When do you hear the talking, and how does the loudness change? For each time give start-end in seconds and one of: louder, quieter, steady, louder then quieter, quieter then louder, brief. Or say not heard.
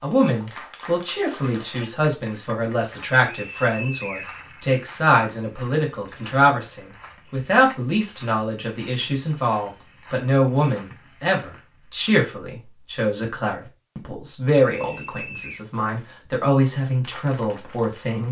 0.0-18.2 steady.